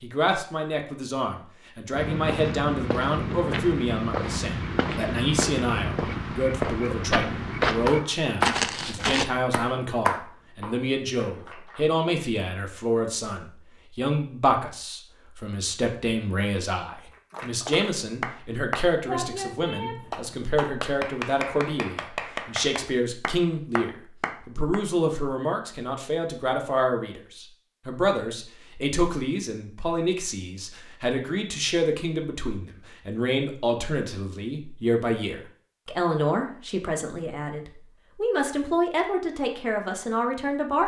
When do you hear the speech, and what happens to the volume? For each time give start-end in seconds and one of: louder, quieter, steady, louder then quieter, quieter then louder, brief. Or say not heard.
0.0-40.8 steady.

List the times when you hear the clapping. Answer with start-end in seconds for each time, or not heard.
7.8-12.0, 17.3-24.8.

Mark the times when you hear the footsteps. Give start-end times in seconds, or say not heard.
1.9-9.3.